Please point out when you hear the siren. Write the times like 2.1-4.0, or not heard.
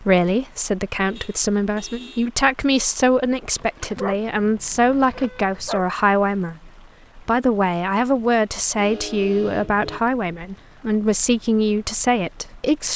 not heard.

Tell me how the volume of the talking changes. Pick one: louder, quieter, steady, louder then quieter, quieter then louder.
steady.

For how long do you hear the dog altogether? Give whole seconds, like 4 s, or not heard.
2 s.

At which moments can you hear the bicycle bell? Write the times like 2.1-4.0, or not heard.
not heard.